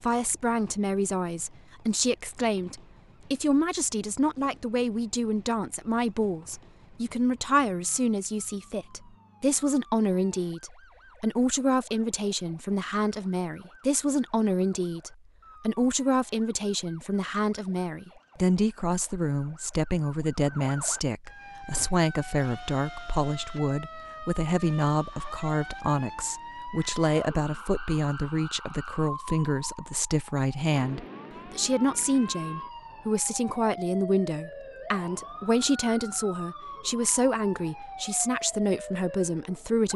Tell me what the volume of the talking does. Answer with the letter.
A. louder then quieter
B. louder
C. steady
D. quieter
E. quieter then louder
C.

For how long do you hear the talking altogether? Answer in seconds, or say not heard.
40 s.